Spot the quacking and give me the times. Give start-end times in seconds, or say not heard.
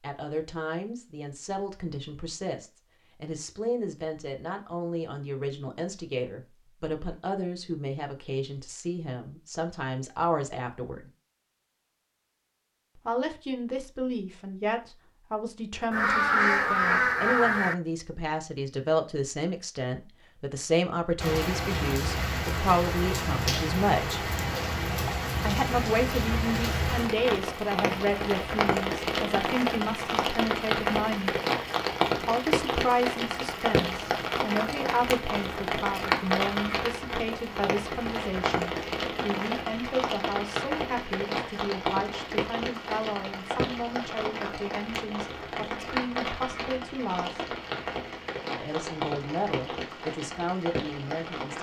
15.9-17.8.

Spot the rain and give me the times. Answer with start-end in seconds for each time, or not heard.
21.2-51.5.